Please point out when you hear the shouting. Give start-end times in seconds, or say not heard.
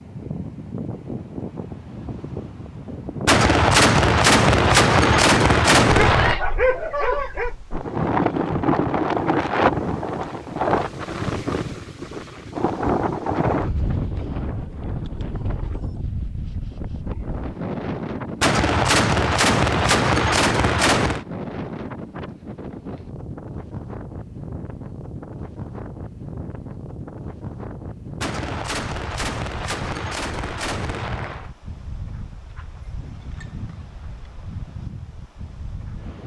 not heard.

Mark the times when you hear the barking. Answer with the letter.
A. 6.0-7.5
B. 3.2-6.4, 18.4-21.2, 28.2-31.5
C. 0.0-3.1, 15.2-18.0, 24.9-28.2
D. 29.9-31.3
A.